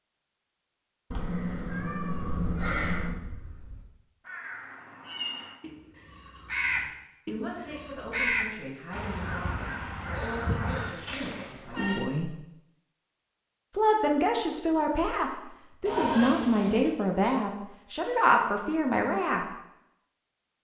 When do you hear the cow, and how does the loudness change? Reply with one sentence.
The cow can't be heard in this clip.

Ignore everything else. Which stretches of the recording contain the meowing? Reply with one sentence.
The meowing can be heard from 1.1 to 3.1 s, from 10.2 to 12.1 s and from 15.8 to 16.9 s.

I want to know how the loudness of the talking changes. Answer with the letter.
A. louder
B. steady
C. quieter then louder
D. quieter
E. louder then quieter
A.